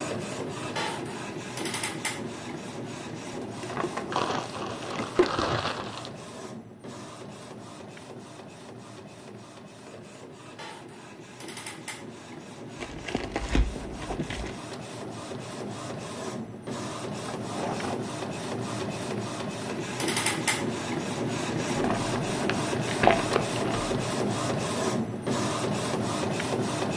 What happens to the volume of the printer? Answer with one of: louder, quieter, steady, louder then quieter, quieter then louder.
quieter then louder.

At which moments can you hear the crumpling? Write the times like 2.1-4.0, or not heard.
4.1-6.1, 12.8-14.6, 21.6-23.9.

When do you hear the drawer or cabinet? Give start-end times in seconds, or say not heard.
3.6-5.3, 17.4-18.0.